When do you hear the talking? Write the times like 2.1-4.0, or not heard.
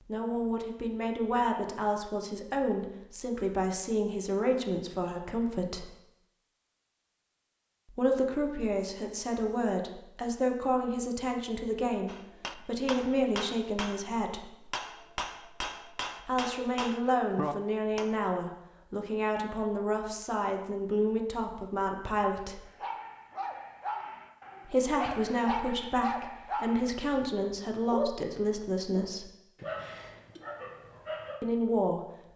0.0-5.9, 7.8-14.4, 16.2-22.6, 24.6-29.3, 31.4-32.3.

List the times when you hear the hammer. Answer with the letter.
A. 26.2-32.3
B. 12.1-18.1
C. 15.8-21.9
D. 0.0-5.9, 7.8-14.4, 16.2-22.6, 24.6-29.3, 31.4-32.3
B.